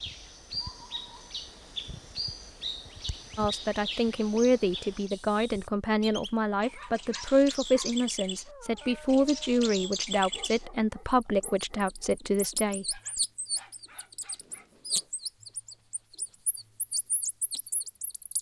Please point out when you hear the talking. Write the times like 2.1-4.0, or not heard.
3.4-13.0.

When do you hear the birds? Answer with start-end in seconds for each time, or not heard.
0.0-18.3.